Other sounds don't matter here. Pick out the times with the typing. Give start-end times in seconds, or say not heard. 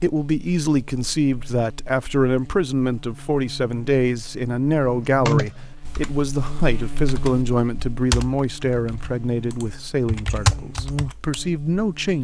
5.0-11.4.